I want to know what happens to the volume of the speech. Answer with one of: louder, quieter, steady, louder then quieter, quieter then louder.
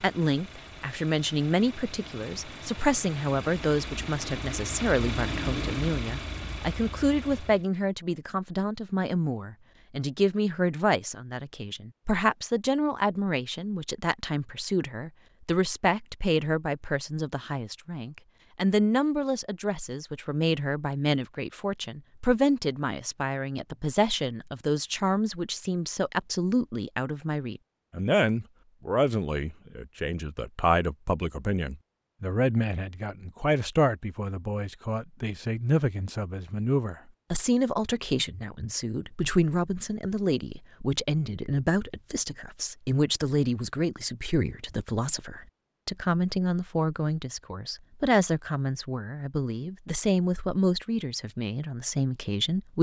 steady.